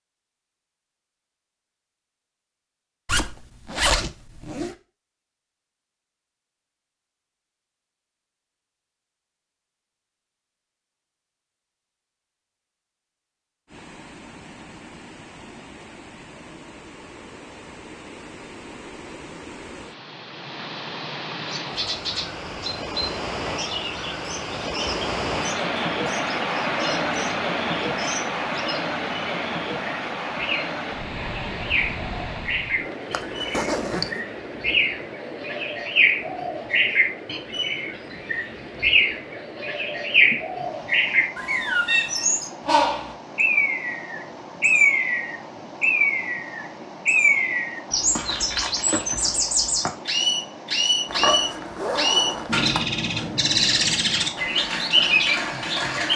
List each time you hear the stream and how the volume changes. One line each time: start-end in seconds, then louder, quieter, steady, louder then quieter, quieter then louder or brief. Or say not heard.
13.7-56.1 louder then quieter.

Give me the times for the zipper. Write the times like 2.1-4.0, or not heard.
3.0-4.8, 33.1-34.2, 51.0-52.9.